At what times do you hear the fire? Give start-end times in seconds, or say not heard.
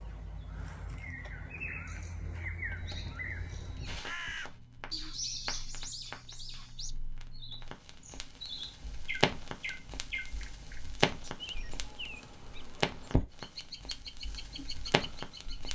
2.8-15.6.